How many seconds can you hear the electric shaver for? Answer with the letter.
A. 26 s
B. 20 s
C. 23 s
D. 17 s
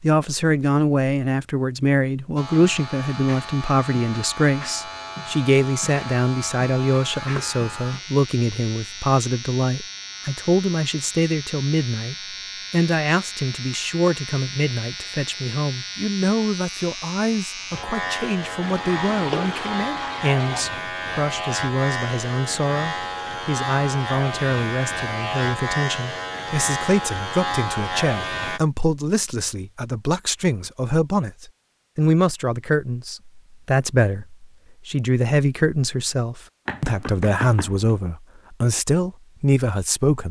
A.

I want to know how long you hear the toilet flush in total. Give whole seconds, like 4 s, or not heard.
2 s.